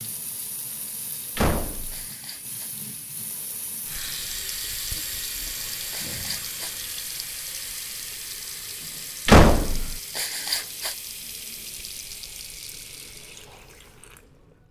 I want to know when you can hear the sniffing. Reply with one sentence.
The sniffing can be heard from 1.9 to 2.7 s, from 5.9 to 6.8 s and from 10.1 to 10.9 s.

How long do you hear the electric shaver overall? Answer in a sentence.
The electric shaver can't be heard in this clip.